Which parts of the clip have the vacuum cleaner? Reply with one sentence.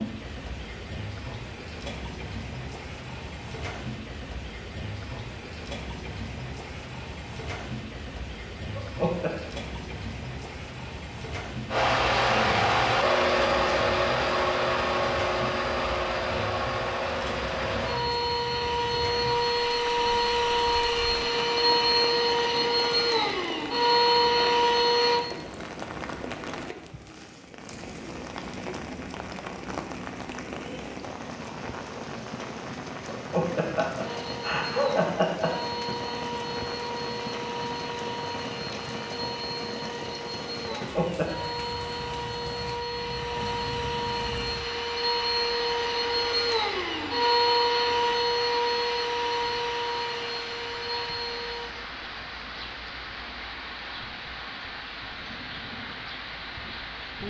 You can hear the vacuum cleaner from 11.7 to 25.2 s and from 34.0 to 51.8 s.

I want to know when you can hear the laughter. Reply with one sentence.
The laughter can be heard from 8.8 to 9.3 s, from 33.1 to 35.5 s and from 40.7 to 41.3 s.